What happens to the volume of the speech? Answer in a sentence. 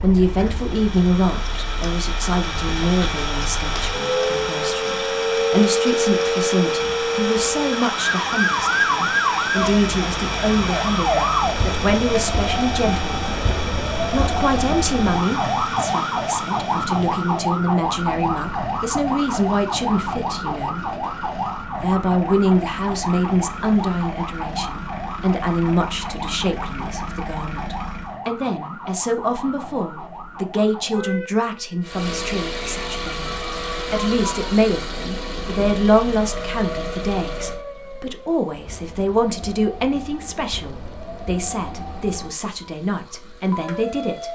The volume of the speech stays about the same.